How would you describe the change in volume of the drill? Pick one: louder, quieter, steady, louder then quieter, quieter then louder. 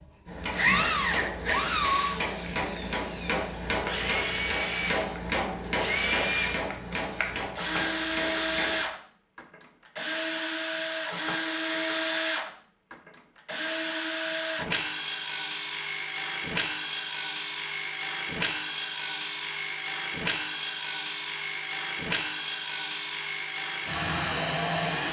steady.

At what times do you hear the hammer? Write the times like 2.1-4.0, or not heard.
0.2-8.8.